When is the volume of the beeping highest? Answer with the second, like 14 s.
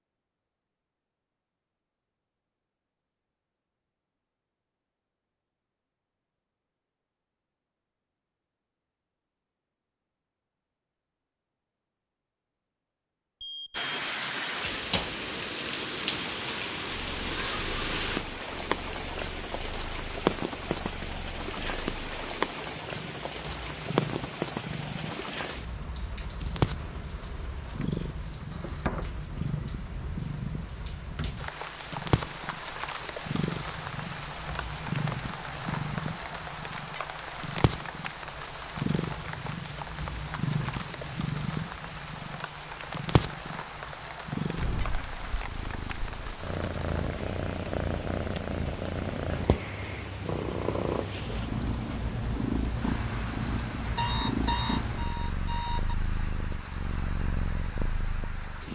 54 s.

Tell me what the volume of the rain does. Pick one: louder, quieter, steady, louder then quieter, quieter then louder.
quieter.